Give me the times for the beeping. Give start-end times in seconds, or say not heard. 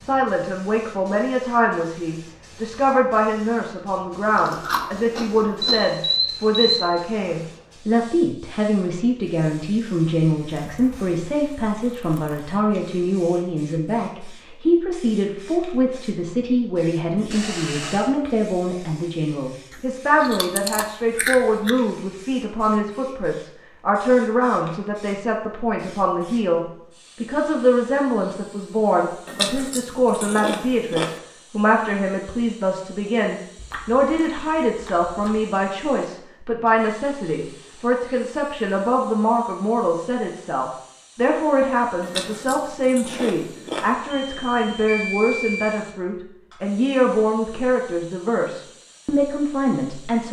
5.8-6.8, 17.3-18.1, 44.1-45.7.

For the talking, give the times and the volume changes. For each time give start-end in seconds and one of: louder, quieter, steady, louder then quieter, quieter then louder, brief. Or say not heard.
0.0-26.6 steady
27.2-50.2 steady.